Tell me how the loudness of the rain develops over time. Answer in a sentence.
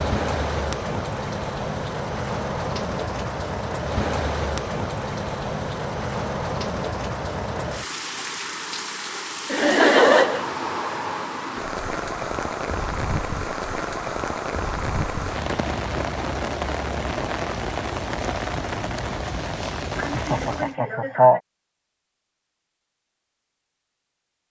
The loudness of the rain stays about the same.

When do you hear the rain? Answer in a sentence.
The rain can be heard from 0.0 to 20.8 s.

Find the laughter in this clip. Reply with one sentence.
The laughter can be heard from 9.5 to 10.4 s and from 19.9 to 21.4 s.